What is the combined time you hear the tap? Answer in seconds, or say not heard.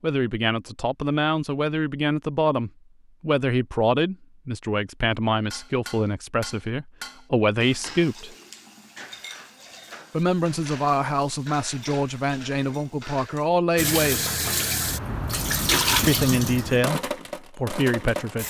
5 s.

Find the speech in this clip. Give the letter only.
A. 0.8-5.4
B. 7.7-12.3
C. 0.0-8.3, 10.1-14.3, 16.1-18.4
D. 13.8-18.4
C.